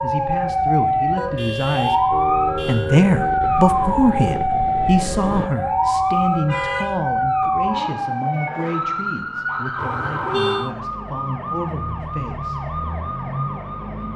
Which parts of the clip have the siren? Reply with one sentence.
You can hear the siren from 0.0 to 14.1 s.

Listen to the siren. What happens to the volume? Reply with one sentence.
The loudness of the siren goes down.